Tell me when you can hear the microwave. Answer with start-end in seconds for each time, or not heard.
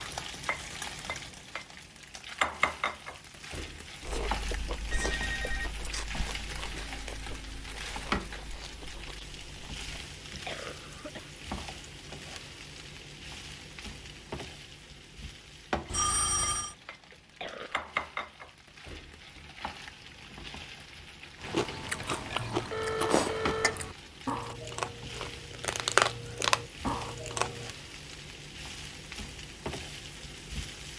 not heard.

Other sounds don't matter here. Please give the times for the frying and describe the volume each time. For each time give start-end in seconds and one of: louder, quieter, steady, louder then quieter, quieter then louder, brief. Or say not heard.
0.0-30.9 quieter.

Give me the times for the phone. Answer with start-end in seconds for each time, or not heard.
4.4-5.7, 15.9-16.8, 22.4-23.9.